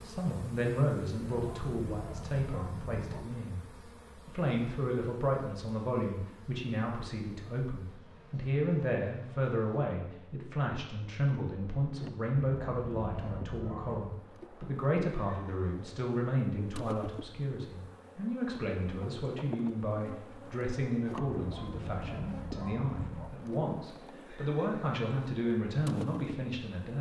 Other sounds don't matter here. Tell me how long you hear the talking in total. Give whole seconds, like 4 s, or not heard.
26 s.